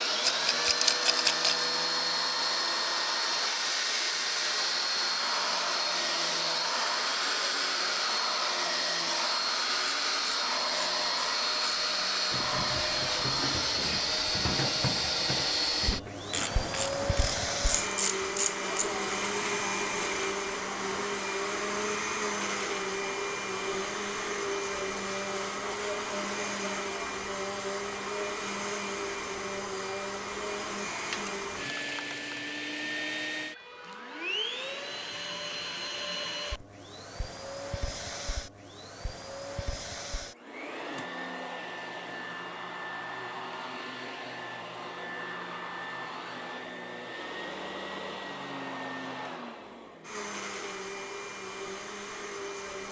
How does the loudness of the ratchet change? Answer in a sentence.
The loudness of the ratchet goes up.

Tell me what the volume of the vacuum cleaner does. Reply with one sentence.
The volume of the vacuum cleaner goes down.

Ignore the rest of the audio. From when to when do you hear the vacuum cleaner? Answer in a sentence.
The vacuum cleaner can be heard from 0.0 to 52.8 s.